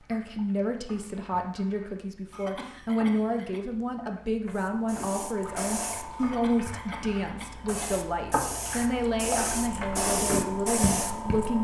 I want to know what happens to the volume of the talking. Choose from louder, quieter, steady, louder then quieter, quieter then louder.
steady.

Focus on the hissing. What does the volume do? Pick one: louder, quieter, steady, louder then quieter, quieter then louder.
quieter then louder.